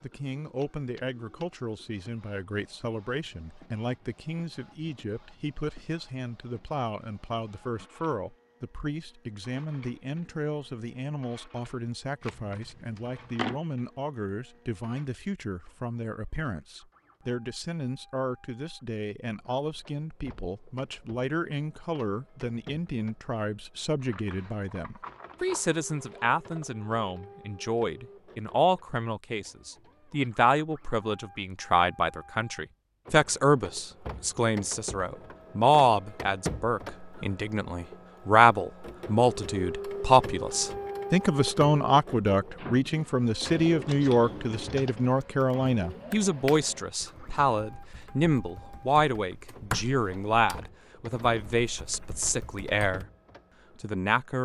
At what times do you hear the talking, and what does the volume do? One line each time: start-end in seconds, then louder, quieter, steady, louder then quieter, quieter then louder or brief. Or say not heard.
0.0-53.0 louder
53.8-54.4 brief.